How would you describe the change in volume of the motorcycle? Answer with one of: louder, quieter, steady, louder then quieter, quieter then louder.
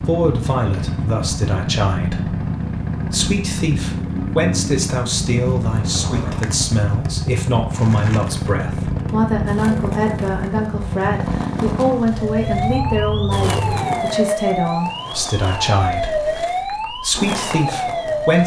steady.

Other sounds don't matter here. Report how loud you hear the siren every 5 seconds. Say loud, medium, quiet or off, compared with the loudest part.
off, off, loud, loud.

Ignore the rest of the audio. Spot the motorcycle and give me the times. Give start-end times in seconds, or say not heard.
0.0-14.3.